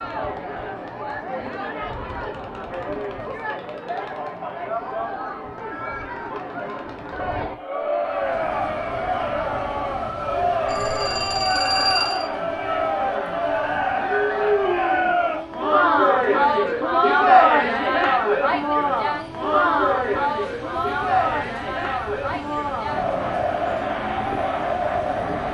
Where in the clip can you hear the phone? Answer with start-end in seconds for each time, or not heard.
10.7-12.2.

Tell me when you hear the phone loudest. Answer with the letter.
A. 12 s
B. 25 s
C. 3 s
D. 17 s
A.